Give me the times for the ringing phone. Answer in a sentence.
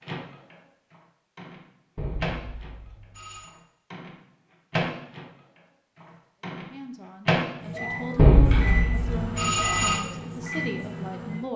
You can hear the ringing phone from 1.9 to 3.5 s and from 8.2 to 10.0 s.